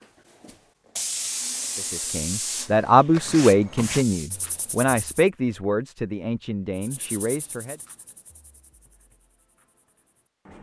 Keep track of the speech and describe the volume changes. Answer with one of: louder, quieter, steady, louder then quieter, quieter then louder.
quieter.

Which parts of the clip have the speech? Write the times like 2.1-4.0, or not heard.
1.8-7.8.